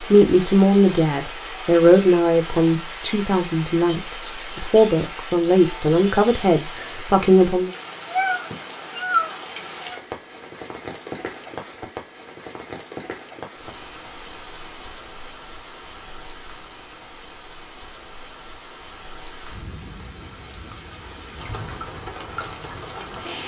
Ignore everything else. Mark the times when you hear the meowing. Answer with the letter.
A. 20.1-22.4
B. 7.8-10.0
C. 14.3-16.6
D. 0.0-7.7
B.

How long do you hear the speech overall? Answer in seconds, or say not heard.
8 s.